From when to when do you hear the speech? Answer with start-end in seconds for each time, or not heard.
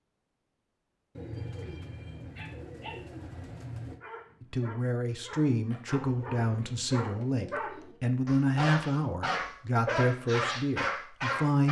4.4-11.6.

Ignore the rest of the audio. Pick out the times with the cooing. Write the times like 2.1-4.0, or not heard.
1.1-4.0, 5.9-8.0.